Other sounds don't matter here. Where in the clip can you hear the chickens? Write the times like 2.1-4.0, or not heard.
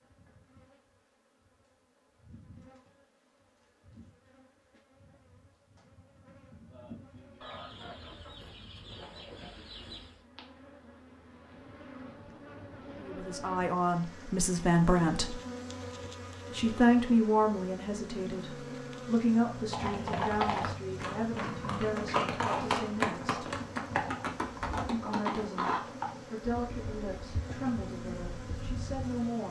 7.4-10.2.